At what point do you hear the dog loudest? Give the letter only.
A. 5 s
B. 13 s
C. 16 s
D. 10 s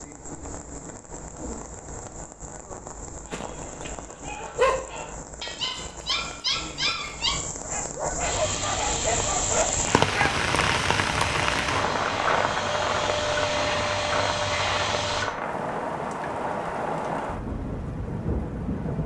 A.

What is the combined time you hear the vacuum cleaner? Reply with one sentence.
The vacuum cleaner can be heard for 7 seconds in total.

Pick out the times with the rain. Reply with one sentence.
The rain can be heard from 0.0 to 19.0 s.